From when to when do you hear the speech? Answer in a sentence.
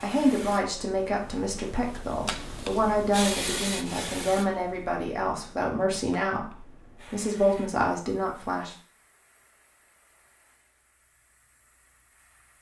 The speech can be heard from 0.0 to 8.8 s.